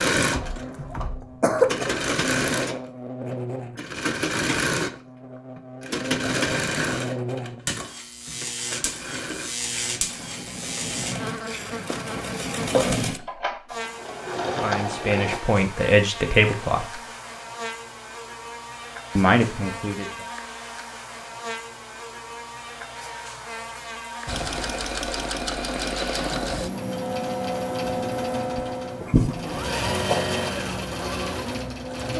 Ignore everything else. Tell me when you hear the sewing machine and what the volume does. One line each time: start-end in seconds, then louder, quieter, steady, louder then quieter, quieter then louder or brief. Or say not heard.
0.0-15.4 quieter then louder
24.2-32.1 steady.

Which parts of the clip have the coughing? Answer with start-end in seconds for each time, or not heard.
0.3-2.0, 12.1-13.0, 28.6-30.2.